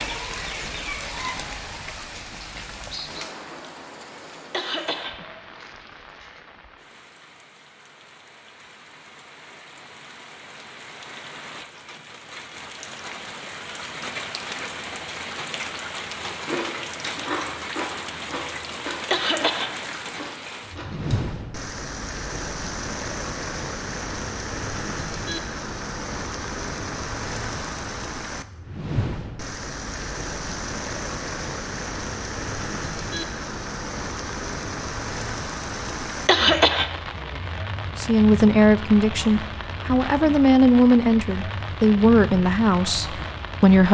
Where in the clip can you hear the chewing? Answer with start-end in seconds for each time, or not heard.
16.3-21.2.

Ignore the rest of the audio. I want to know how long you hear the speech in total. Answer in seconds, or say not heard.
6 s.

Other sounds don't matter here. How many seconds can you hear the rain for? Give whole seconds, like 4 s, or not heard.
44 s.